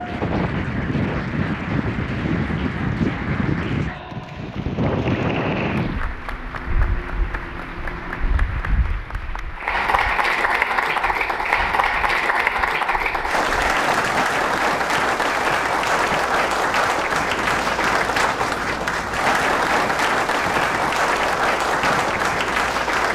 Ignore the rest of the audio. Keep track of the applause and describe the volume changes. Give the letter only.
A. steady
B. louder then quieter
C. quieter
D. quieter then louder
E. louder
E.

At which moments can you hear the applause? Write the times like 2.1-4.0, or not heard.
0.0-23.1.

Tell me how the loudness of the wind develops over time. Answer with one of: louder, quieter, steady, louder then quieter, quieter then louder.
quieter then louder.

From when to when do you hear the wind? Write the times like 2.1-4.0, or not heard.
0.0-23.1.